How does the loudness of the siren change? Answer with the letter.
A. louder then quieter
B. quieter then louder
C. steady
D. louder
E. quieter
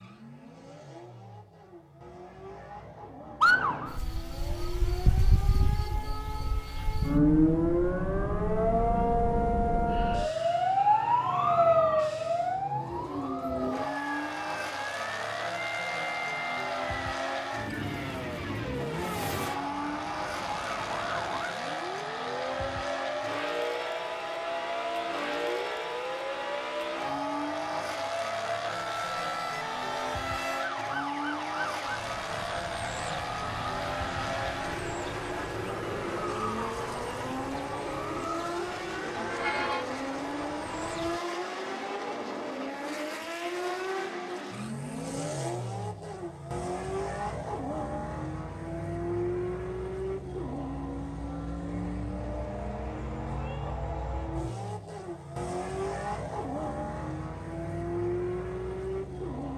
E.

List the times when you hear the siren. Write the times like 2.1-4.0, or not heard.
3.4-41.2.